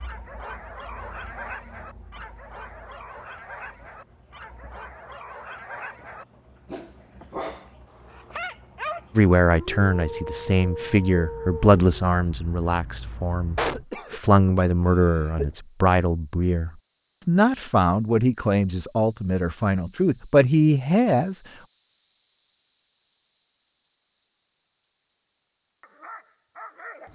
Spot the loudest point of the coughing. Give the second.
14 s.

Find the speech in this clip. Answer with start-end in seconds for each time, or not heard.
9.2-21.4.